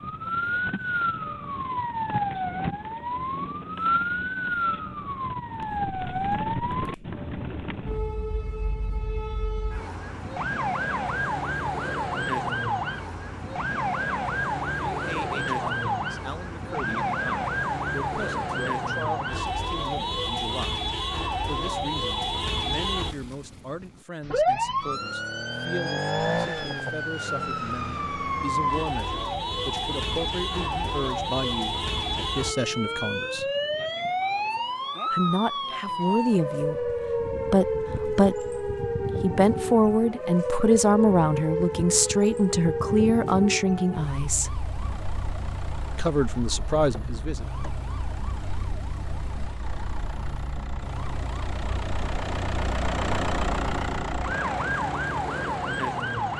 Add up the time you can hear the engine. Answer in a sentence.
The engine can be heard for 12 seconds in total.